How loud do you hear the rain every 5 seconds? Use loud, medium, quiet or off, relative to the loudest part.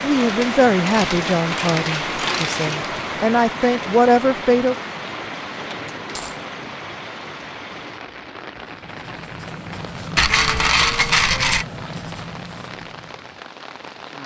loud, medium, medium.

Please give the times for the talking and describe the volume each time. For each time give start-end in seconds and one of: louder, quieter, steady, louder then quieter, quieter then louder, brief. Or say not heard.
0.0-4.8 quieter then louder.